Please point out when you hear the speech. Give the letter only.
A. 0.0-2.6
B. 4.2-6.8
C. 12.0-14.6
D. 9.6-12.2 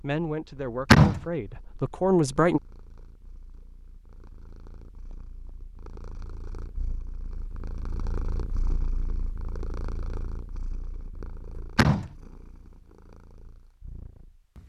A.